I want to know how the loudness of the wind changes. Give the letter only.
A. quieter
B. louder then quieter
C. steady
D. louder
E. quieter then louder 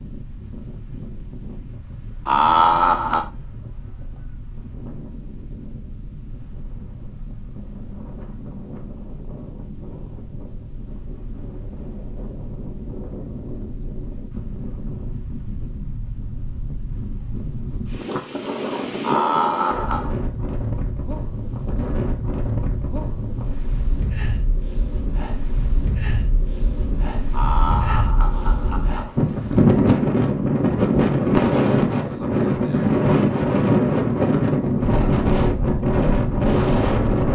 D.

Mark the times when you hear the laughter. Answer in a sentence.
The laughter can be heard from 2.2 to 3.3 s, from 19.0 to 20.1 s and from 27.3 to 29.1 s.